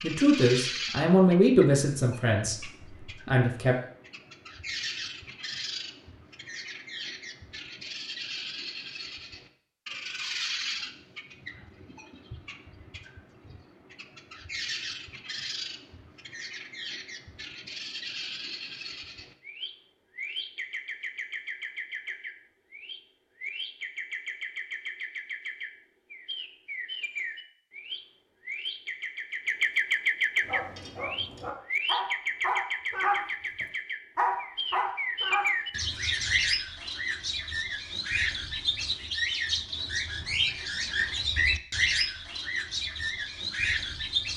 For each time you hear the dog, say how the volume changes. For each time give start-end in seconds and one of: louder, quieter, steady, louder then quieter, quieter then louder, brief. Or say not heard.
30.4-35.5 louder.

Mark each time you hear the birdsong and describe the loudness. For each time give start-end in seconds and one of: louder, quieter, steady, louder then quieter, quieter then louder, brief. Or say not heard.
0.0-44.3 louder.